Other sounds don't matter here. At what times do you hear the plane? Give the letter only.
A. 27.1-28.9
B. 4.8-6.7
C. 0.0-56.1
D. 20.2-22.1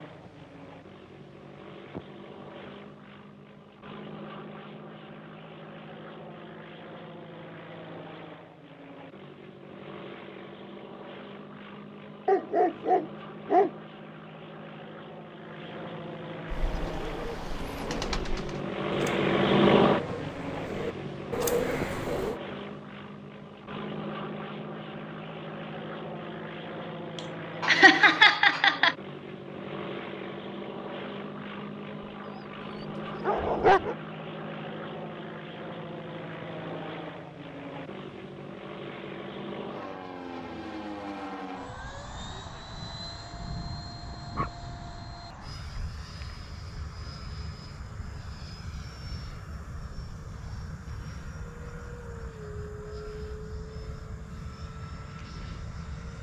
C.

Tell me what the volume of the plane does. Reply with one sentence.
The volume of the plane goes up, then down.